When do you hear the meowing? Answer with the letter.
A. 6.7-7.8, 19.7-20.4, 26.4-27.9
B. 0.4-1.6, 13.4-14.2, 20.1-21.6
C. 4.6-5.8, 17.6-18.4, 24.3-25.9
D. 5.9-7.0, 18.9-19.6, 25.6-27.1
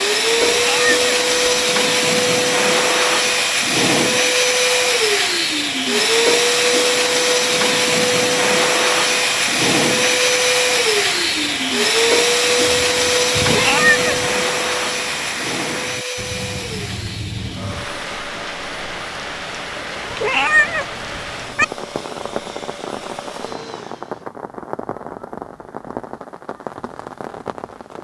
B.